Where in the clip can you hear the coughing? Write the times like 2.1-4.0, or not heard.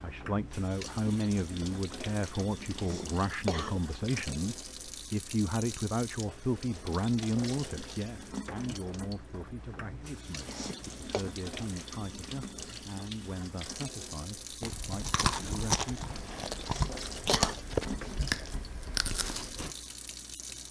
2.8-3.8, 10.4-11.2, 16.6-17.6.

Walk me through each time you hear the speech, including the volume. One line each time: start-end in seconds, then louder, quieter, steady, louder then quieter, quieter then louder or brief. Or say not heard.
0.0-16.2 quieter.